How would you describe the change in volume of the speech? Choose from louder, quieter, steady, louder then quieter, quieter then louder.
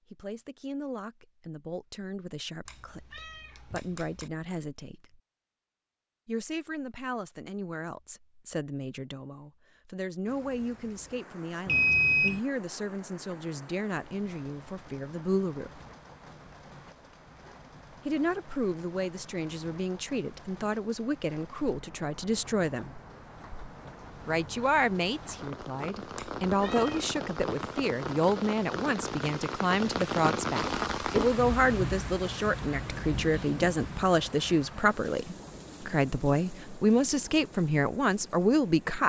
louder.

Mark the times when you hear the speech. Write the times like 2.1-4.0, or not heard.
0.1-5.2, 6.2-15.8, 18.1-23.0, 24.2-39.0.